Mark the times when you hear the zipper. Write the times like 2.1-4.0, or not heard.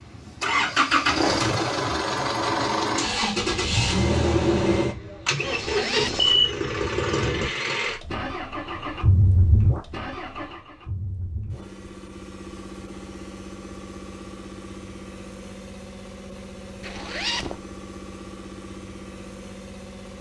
5.5-6.4, 16.8-17.6.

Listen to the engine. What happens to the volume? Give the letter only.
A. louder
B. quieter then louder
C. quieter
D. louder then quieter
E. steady
C.